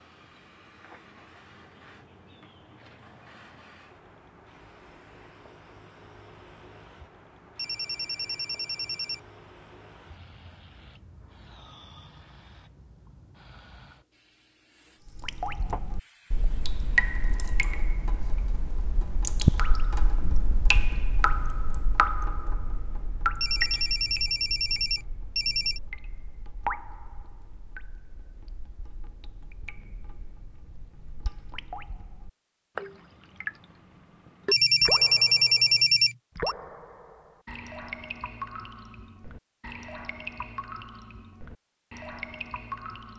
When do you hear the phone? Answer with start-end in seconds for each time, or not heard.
7.5-9.2, 23.4-25.8, 34.5-36.5.